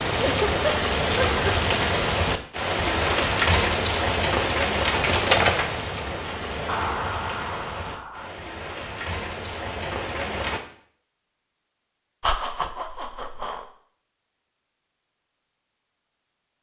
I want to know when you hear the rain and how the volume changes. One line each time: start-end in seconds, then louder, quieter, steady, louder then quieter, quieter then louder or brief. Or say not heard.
0.0-10.6 quieter.